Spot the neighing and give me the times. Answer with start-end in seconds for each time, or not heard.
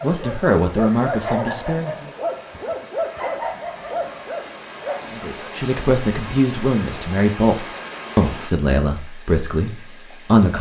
not heard.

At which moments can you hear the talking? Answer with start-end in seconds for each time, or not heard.
0.0-2.1, 5.1-10.5.